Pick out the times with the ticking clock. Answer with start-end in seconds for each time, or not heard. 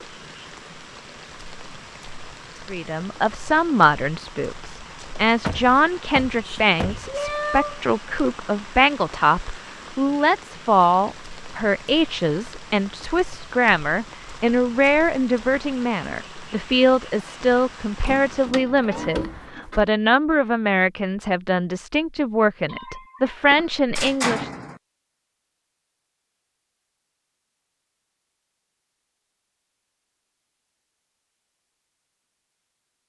not heard.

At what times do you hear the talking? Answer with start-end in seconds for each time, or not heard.
2.7-24.5.